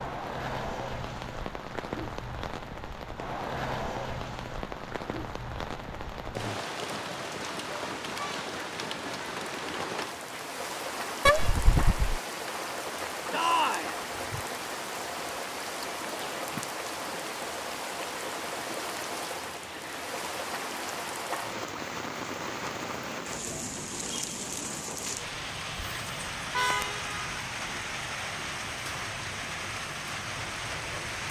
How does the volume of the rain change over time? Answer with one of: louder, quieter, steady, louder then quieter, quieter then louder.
steady.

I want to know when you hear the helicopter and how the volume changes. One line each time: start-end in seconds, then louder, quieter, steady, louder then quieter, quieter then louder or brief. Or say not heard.
not heard.